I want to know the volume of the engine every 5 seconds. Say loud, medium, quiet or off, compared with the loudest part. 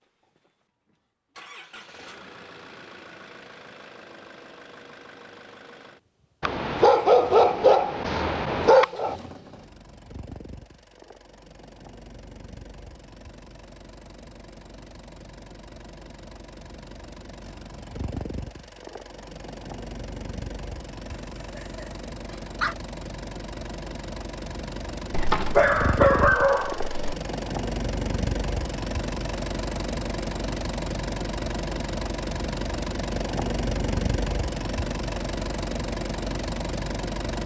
quiet, quiet, quiet, medium, medium, loud, loud, loud.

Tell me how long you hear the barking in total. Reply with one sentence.
The barking can be heard for 6 seconds in total.